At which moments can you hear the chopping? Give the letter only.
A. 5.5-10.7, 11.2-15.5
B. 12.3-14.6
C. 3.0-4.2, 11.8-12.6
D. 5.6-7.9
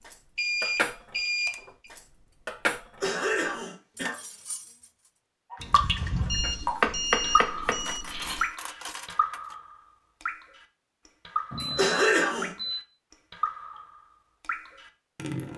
D.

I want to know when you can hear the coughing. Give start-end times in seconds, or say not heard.
3.0-4.2, 11.8-12.6.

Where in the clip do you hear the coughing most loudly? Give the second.
12 s.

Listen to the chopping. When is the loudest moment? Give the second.
7 s.